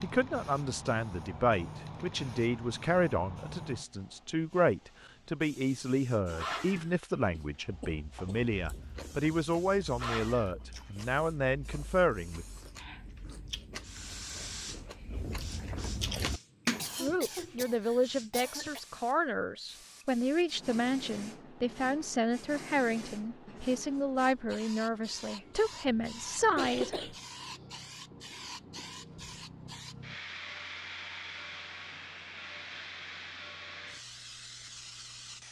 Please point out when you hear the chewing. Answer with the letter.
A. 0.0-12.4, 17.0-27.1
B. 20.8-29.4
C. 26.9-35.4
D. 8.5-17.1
D.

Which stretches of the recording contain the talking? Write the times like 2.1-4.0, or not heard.
0.0-12.4, 17.0-27.1.